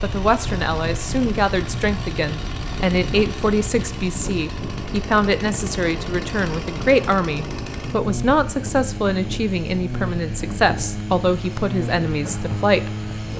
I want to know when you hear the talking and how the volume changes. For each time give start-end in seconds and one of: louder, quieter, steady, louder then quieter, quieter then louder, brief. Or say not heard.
0.0-12.9 steady.